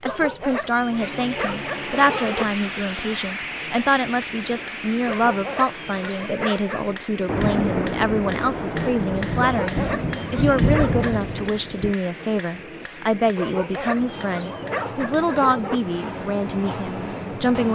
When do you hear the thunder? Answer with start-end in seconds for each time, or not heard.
7.2-11.9.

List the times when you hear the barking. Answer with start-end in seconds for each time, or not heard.
0.0-2.5, 5.0-6.9, 9.3-11.2, 13.3-15.8.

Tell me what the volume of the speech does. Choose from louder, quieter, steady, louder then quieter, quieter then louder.
steady.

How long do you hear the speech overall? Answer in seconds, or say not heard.
18 s.